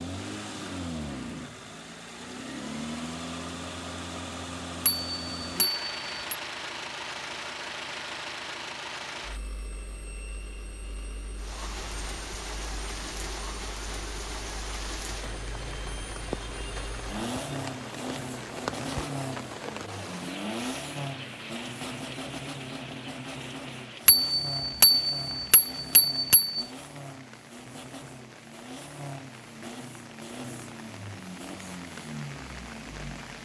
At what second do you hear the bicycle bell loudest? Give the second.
25 s.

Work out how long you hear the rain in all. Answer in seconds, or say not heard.
22 s.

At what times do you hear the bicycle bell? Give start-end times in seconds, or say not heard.
4.8-6.3, 24.1-26.6.